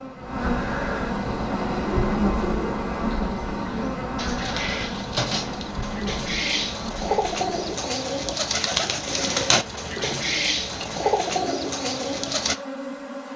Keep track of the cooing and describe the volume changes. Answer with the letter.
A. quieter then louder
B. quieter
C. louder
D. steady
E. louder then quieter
C.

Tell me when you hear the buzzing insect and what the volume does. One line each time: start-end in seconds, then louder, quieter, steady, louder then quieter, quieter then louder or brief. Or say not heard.
0.0-13.3 quieter.